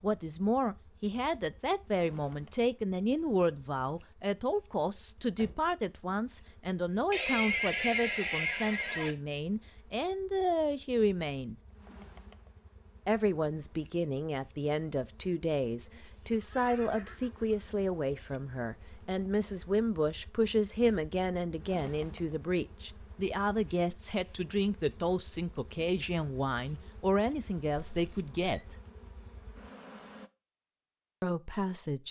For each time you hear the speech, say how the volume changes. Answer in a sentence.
The speech can be heard from 0.0 to 11.6 s, at a steady volume; from 13.1 to 28.8 s, at a steady volume; and briefly from 31.2 to 32.0 s.